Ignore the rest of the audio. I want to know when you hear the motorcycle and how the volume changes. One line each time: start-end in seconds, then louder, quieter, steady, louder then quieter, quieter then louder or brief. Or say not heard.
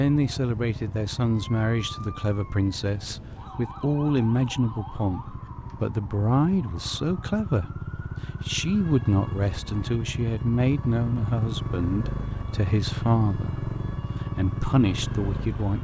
0.1-15.7 louder.